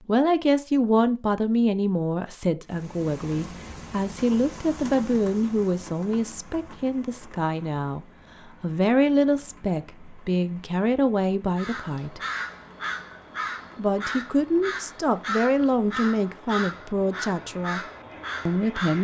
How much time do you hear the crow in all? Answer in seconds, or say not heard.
7 s.